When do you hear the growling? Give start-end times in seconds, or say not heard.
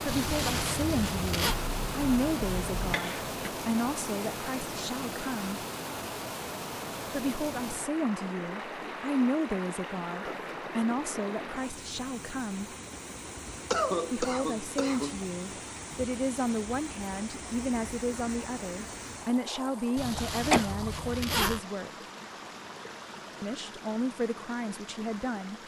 not heard.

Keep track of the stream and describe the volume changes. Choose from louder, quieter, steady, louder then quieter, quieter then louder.
quieter.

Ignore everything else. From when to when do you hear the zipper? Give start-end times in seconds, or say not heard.
0.1-1.6, 19.9-21.6.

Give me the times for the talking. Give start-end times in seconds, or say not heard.
0.0-5.6, 7.1-12.7, 14.1-21.9, 23.4-25.6.